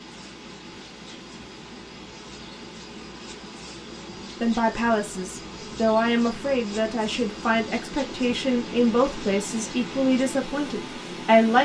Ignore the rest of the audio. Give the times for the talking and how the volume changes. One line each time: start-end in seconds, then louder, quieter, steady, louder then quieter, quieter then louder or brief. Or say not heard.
4.4-11.6 steady.